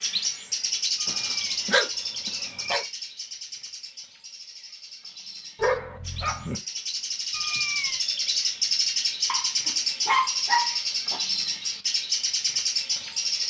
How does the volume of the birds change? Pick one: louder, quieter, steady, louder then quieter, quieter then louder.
quieter then louder.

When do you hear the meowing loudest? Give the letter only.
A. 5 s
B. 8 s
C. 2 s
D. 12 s
B.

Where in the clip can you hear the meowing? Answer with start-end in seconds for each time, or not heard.
0.9-3.0, 7.3-8.0.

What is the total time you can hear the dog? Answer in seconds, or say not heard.
5 s.